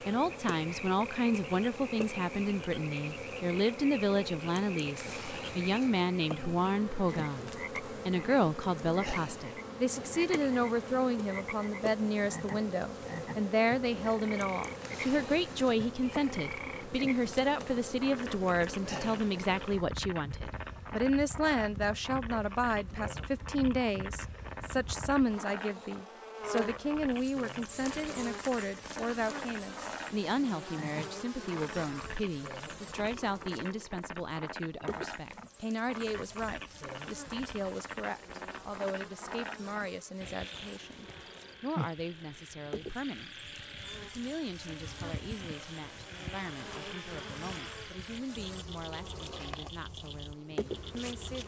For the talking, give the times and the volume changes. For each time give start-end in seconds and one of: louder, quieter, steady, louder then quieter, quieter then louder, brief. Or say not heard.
0.1-51.4 quieter.